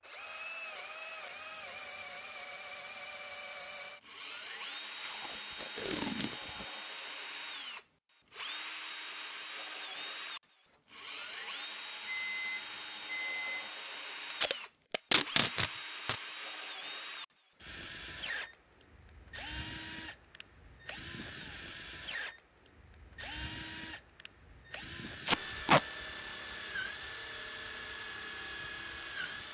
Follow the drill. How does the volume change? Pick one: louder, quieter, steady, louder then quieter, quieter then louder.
steady.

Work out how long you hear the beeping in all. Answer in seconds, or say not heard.
2 s.